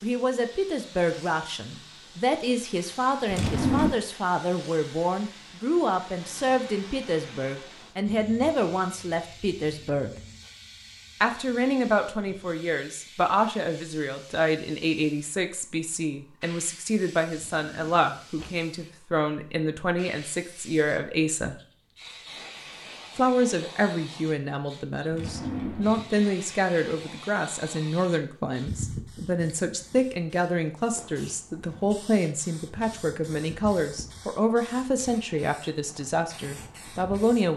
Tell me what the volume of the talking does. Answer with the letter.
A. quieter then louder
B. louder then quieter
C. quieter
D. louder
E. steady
E.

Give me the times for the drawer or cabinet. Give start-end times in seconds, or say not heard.
3.3-4.0, 17.4-18.5, 25.1-26.1.